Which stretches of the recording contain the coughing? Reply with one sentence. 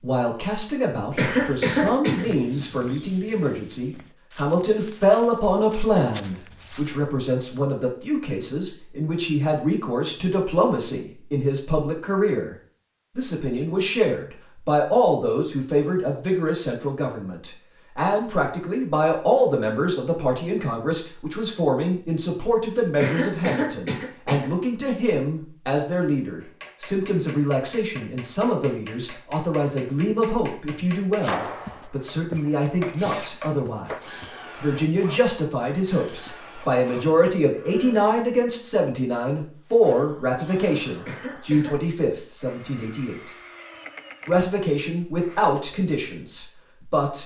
You can hear the coughing from 1.1 to 2.2 s, from 22.9 to 24.5 s and from 41.0 to 41.8 s.